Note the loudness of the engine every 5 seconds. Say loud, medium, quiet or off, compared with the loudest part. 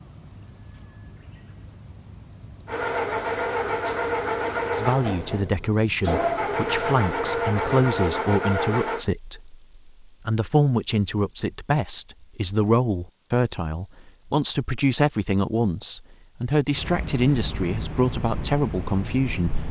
loud, loud, off, off.